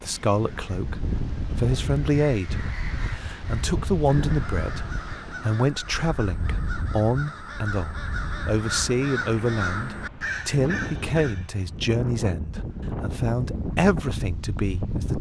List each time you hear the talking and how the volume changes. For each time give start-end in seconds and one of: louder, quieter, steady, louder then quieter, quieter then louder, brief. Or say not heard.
0.0-15.1 steady.